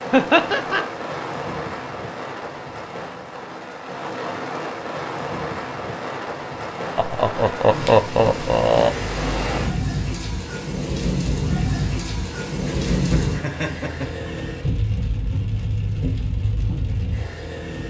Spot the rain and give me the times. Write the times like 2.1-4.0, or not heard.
0.0-17.8.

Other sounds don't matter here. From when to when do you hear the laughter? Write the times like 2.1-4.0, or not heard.
0.1-0.8, 7.0-8.9, 12.7-14.5.